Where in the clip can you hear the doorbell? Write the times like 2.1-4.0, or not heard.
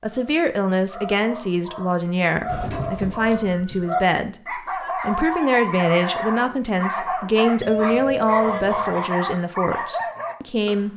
2.5-4.0, 7.5-9.1.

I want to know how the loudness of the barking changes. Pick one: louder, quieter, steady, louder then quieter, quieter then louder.
louder.